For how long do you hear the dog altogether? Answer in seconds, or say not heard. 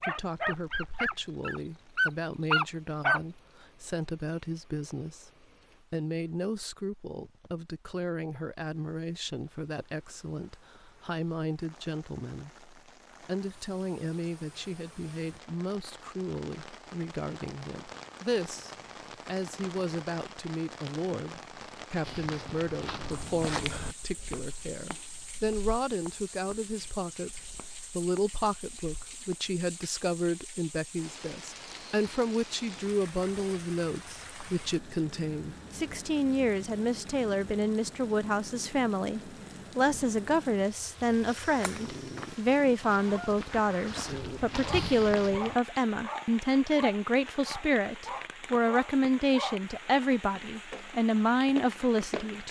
11 s.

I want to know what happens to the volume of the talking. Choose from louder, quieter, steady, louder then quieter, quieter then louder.
louder.